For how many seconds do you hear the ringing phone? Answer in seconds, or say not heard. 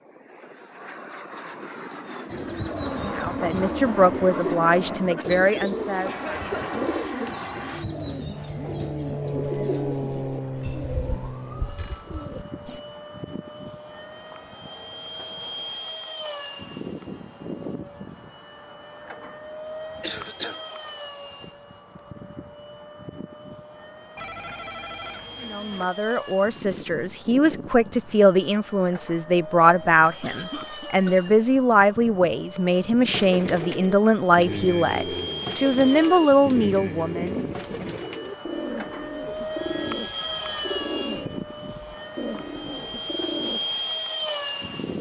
5 s.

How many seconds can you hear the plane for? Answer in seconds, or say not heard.
45 s.